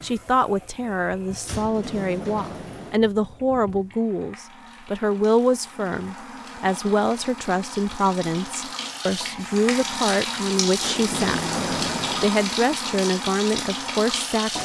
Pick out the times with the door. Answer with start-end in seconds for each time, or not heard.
1.4-3.0, 10.8-12.3.